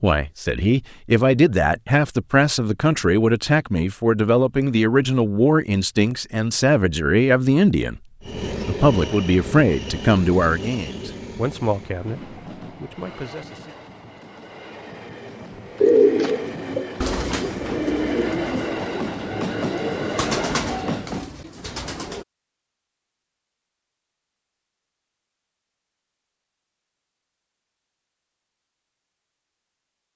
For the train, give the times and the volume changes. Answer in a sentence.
The train can be heard from 8.2 to 21.3 s, getting quieter then louder.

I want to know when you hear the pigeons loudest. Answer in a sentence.
The volume of the pigeons peaks at 16 seconds.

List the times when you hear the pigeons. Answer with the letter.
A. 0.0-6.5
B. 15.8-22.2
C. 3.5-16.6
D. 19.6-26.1
B.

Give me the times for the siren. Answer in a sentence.
You can't hear the siren here.